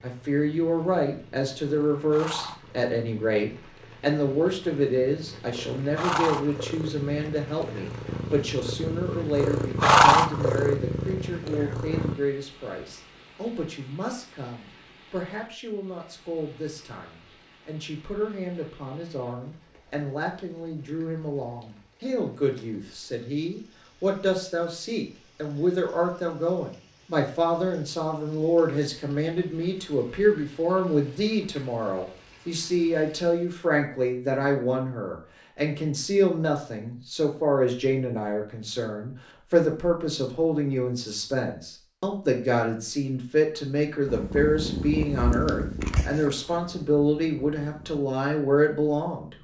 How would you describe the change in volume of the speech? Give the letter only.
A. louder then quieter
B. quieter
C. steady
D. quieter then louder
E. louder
D.